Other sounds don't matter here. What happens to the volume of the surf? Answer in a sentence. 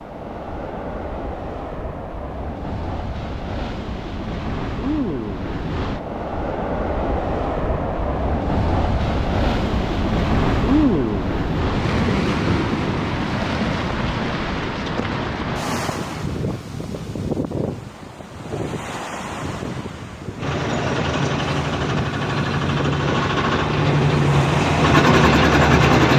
The volume of the surf goes up, then down.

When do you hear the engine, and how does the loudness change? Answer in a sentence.
You can hear the engine from 20.4 to 26.1 s, getting louder.